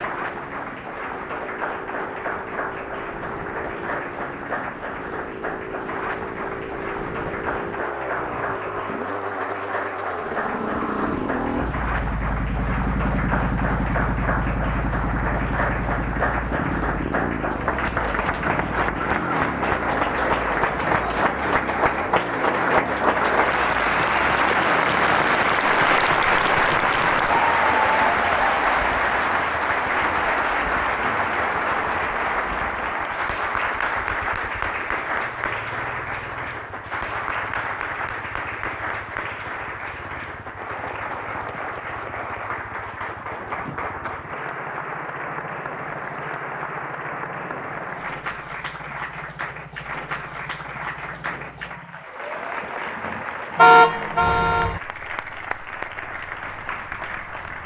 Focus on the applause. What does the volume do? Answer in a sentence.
The loudness of the applause goes up, then down.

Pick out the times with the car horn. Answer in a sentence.
The car horn can be heard from 53.5 to 54.8 s.